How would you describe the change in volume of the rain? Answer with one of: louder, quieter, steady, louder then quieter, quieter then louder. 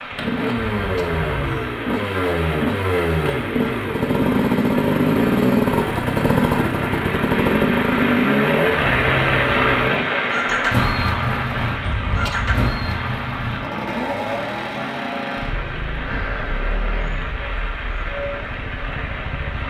louder then quieter.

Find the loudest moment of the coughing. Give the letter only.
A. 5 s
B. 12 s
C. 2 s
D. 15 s
B.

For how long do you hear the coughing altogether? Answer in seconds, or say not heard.
2 s.